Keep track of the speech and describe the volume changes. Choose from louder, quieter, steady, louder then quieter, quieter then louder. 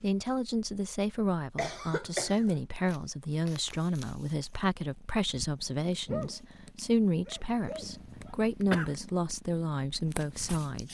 steady.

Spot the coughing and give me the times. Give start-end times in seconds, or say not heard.
1.6-2.6, 7.8-8.9.